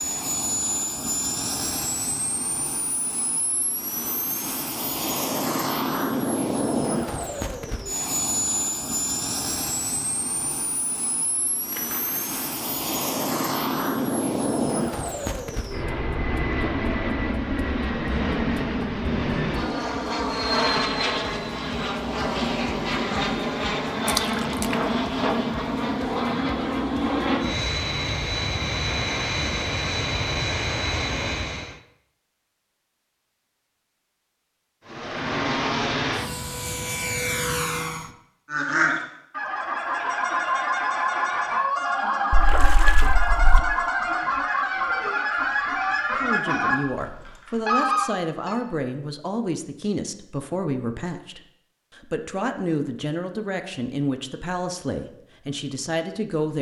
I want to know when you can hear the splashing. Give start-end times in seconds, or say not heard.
11.7-12.3, 24.1-24.8, 42.3-43.6.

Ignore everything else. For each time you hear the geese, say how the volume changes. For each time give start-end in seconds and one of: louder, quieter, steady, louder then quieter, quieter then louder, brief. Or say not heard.
38.5-48.5 steady.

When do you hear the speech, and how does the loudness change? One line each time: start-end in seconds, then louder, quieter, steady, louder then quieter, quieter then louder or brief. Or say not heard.
46.1-56.5 steady.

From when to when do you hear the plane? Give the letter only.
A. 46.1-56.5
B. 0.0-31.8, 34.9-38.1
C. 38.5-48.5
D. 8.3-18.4
B.